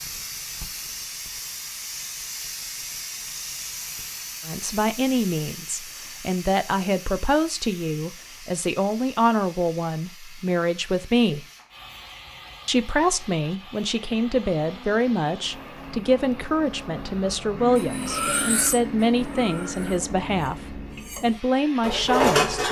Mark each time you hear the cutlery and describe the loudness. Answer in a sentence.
The cutlery can be heard from 17.8 to 22.6 s, getting quieter then louder.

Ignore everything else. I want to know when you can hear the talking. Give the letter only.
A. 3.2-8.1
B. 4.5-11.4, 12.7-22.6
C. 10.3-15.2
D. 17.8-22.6
B.